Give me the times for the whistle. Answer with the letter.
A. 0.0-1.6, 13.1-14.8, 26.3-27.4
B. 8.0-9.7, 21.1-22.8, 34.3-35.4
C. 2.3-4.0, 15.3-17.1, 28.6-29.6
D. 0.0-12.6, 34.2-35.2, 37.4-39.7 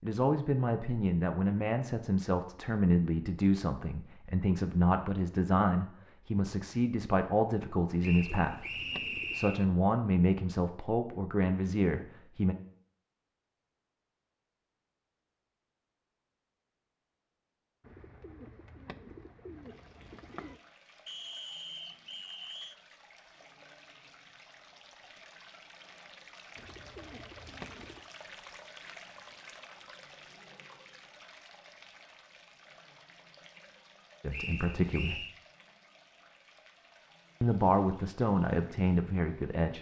B.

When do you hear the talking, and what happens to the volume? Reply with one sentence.
You can hear the talking from 0.0 to 12.6 s, at a steady volume; briefly from 34.2 to 35.2 s; and briefly from 37.4 to 39.7 s.